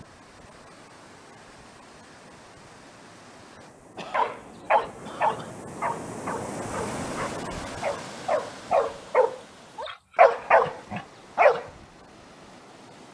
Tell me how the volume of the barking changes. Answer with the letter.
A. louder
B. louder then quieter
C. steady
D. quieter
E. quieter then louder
E.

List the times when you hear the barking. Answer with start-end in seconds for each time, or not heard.
4.1-11.7.